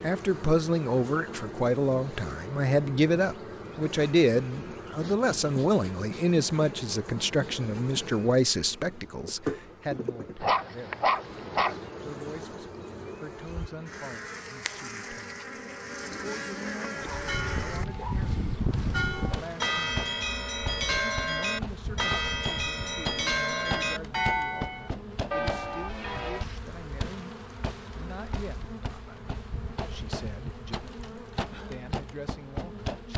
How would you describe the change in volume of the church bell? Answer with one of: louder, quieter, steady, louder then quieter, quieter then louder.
steady.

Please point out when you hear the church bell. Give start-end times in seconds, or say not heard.
17.0-26.4.